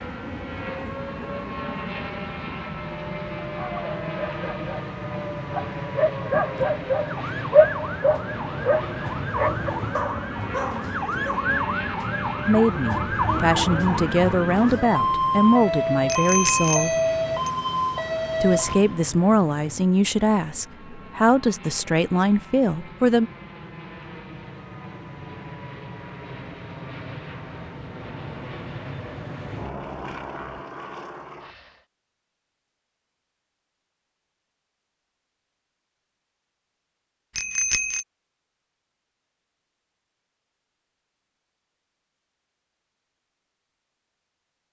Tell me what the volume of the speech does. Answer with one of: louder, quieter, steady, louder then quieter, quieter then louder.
steady.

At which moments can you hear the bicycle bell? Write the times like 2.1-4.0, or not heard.
16.1-17.5, 37.4-38.0.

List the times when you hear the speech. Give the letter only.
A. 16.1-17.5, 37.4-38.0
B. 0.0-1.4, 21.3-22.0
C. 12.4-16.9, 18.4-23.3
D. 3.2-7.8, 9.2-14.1
C.